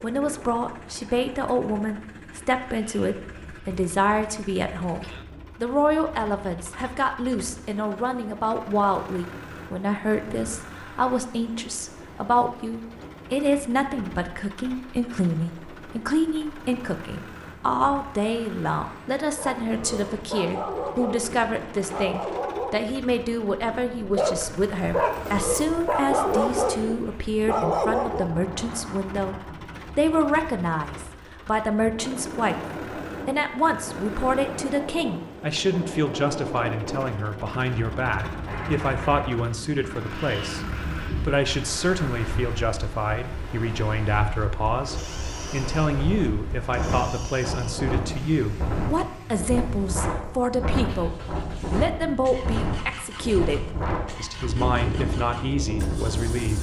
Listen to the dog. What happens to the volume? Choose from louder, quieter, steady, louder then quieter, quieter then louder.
louder.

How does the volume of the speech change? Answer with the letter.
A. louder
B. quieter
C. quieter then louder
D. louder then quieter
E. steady
E.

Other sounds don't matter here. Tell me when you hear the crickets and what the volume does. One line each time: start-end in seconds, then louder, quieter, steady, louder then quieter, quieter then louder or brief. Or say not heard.
not heard.